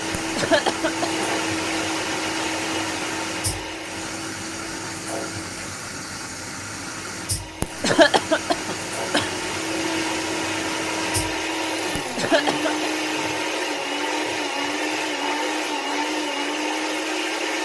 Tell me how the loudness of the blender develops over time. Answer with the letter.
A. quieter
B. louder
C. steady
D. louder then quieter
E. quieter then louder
E.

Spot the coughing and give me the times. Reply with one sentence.
The coughing can be heard from 0.1 to 1.2 s, from 7.6 to 9.3 s and from 11.9 to 12.9 s.